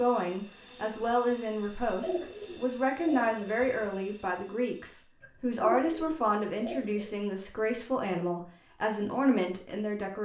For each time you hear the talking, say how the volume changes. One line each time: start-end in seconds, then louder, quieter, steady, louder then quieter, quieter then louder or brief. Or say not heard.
0.0-10.2 steady.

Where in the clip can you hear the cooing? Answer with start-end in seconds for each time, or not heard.
1.6-3.6, 5.2-7.2.